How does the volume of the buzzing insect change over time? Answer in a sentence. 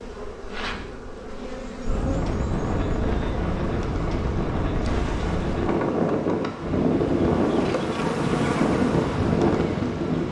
The volume of the buzzing insect goes up.